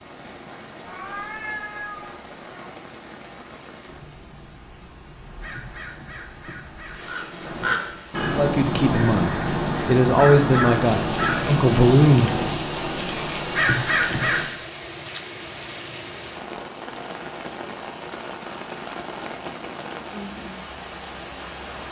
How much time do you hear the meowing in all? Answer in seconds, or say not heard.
2 s.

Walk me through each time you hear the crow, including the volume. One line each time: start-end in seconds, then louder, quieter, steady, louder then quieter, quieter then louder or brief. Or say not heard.
5.2-14.5 louder.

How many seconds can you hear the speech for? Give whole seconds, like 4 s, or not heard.
4 s.